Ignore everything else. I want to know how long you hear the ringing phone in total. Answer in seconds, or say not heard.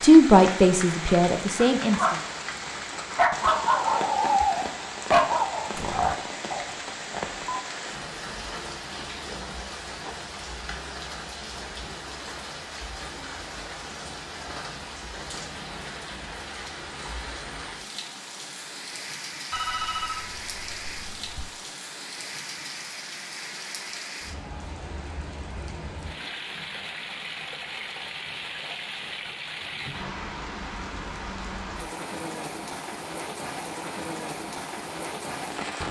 3 s.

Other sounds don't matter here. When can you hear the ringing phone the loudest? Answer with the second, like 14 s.
20 s.